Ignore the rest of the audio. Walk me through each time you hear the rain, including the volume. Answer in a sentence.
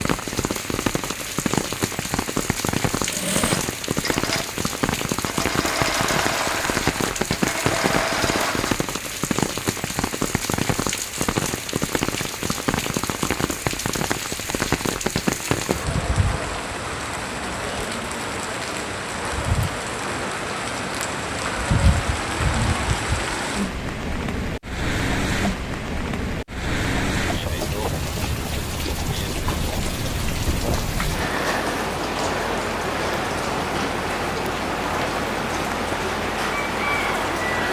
The rain can be heard from 0.0 to 37.6 s, at a steady volume.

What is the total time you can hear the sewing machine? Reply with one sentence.
You can hear the sewing machine for 6 seconds altogether.